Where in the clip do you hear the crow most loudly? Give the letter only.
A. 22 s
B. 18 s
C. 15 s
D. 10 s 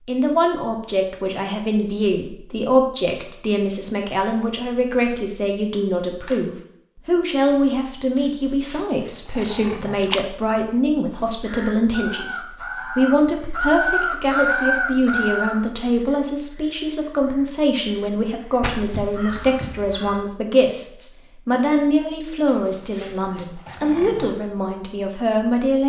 C.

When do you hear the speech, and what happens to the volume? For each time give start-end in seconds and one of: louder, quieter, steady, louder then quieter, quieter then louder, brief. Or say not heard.
0.1-25.8 steady.